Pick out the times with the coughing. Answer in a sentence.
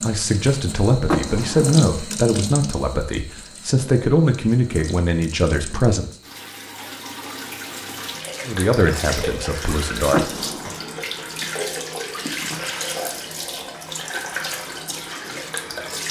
The coughing can't be heard in this clip.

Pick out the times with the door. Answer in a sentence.
You can hear the door from 1.1 to 1.8 s and from 10.1 to 11.0 s.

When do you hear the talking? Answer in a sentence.
You can hear the talking from 0.0 to 6.1 s and from 8.4 to 10.7 s.